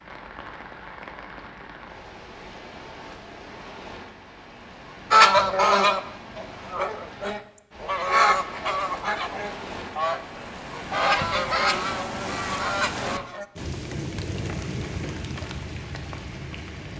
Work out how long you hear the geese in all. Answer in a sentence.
The geese can be heard for 8 seconds in total.